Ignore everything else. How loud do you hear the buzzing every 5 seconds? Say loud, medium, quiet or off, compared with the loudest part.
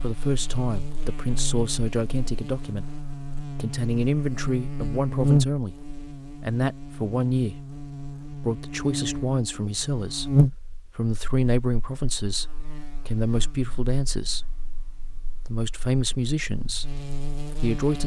medium, loud, loud, medium.